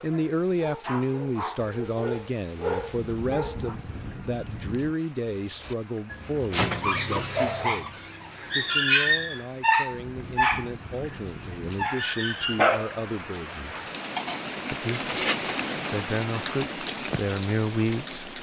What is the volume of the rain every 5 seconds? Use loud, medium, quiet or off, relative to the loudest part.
quiet, quiet, medium, loud.